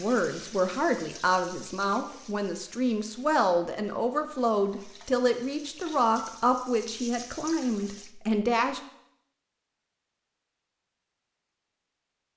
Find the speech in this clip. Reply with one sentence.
The speech can be heard from 0.0 to 8.8 s.